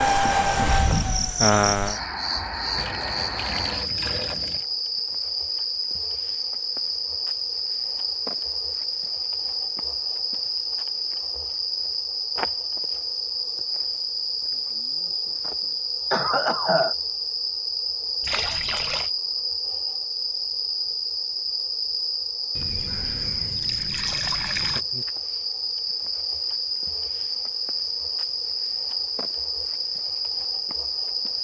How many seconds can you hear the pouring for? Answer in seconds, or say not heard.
5 s.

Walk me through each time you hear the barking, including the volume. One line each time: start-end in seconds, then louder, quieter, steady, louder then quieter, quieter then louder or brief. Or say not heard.
not heard.